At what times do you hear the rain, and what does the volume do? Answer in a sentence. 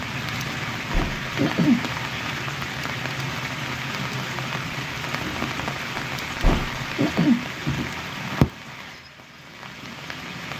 You can hear the rain from 0.0 to 10.5 s, at a steady volume.